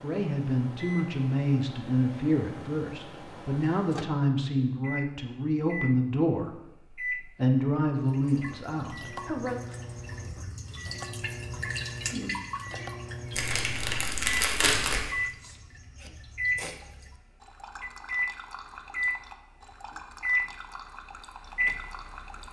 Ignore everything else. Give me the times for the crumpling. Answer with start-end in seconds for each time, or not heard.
13.3-15.0.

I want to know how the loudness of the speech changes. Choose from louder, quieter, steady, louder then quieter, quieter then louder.
steady.